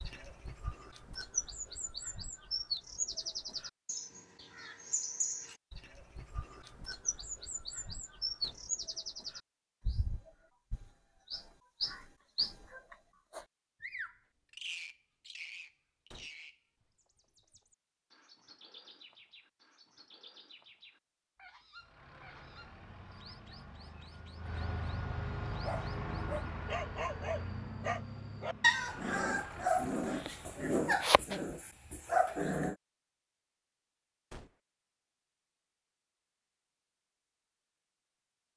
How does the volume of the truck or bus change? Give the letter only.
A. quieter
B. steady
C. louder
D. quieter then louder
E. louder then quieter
E.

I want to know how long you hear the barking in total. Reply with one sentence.
You can hear the barking for 7 seconds altogether.